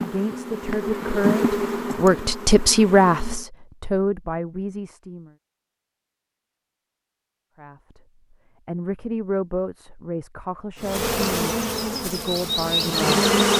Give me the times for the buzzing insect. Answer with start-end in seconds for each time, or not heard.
0.0-3.5, 10.8-13.5.